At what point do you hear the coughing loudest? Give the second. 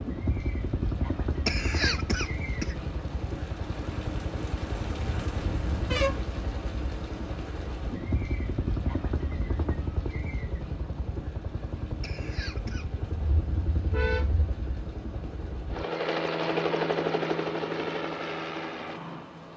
2 s.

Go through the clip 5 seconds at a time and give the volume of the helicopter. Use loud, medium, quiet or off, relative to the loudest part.
medium, medium, medium, loud.